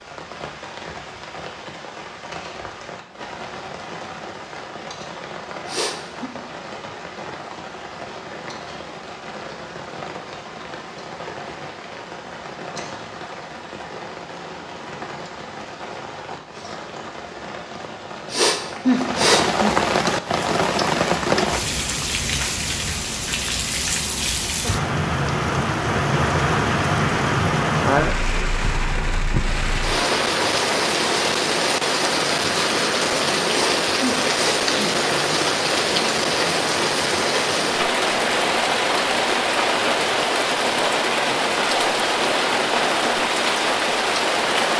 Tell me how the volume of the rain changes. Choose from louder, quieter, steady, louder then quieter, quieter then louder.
louder.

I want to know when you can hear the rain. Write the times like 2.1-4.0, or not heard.
0.0-44.7.